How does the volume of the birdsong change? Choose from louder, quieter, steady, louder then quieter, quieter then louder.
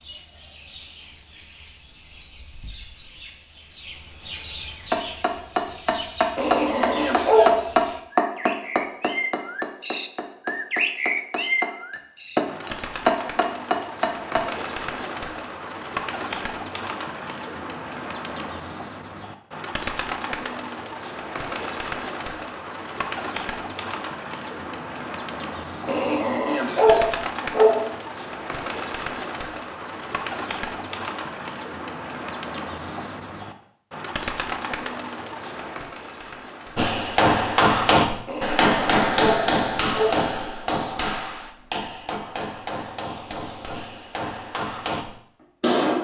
louder.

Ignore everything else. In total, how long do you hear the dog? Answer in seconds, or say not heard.
5 s.